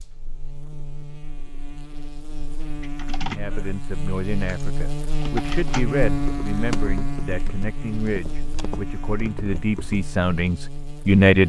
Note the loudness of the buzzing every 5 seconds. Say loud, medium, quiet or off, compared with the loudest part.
medium, loud, medium.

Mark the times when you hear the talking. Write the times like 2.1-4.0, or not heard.
3.1-11.4.